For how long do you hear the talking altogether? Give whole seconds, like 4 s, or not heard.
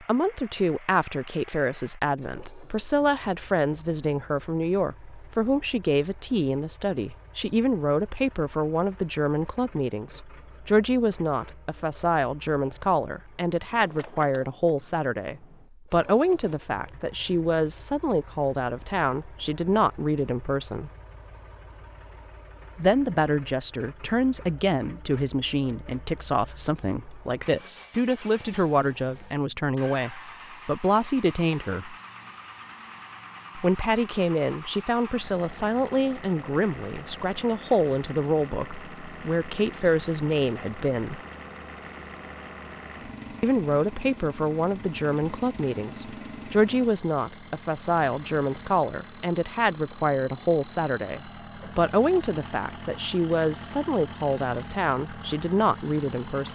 51 s.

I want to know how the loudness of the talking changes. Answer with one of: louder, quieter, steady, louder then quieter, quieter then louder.
steady.